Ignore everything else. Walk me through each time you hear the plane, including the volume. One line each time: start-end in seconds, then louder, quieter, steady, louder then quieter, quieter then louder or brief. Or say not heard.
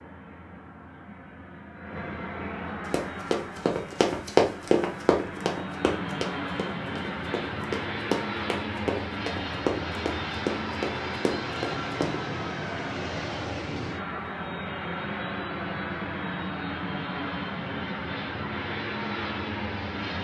0.0-20.2 louder.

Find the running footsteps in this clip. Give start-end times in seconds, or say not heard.
2.9-12.2.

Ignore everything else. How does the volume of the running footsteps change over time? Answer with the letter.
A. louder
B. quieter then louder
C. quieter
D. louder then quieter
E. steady
C.